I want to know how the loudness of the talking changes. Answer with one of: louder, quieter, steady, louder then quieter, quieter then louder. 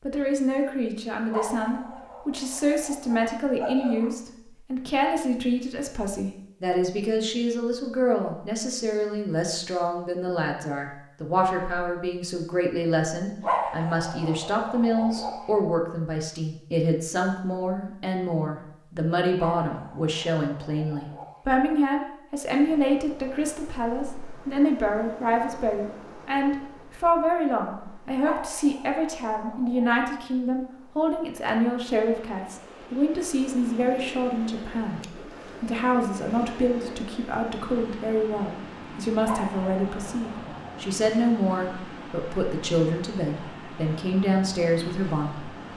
steady.